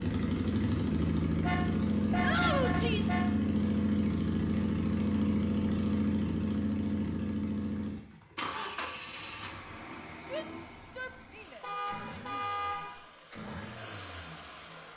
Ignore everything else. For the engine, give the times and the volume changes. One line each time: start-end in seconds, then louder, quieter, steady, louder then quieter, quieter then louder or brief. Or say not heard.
0.0-14.9 quieter.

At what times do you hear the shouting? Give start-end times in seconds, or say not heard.
2.2-3.1, 10.3-12.4.